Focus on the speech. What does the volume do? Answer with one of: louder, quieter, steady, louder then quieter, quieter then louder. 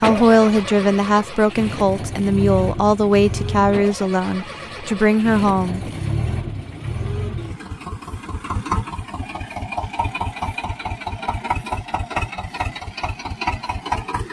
steady.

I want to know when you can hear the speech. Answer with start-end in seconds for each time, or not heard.
0.0-5.8.